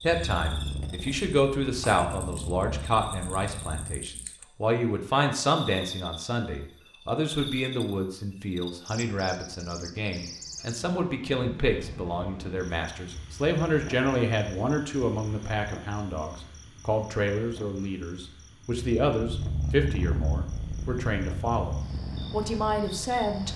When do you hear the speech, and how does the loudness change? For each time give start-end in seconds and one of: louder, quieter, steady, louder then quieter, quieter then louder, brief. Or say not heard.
0.0-23.5 steady.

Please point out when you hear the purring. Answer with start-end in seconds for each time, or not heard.
0.1-4.0, 18.7-23.5.